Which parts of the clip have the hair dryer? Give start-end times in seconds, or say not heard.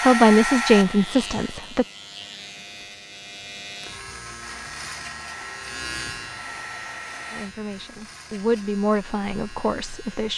0.0-1.6, 4.5-7.5.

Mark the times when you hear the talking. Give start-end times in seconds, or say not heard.
0.0-1.9, 7.3-10.3.